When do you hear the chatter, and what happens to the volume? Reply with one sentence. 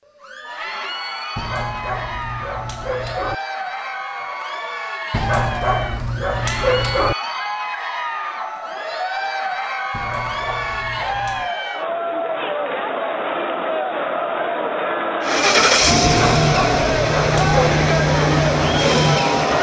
The chatter can be heard from 0.0 to 19.5 s, getting louder.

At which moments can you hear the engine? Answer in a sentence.
The engine can be heard from 15.2 to 19.5 s.